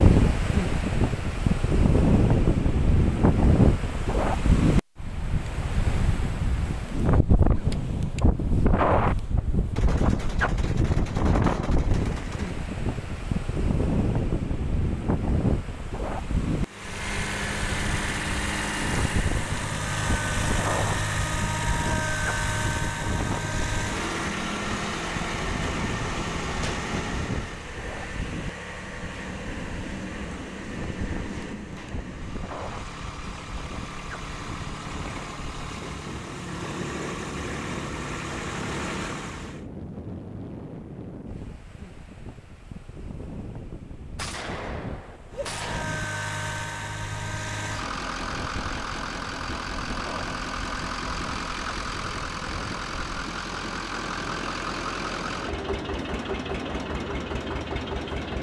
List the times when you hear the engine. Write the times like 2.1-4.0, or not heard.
16.6-39.6, 45.3-58.3.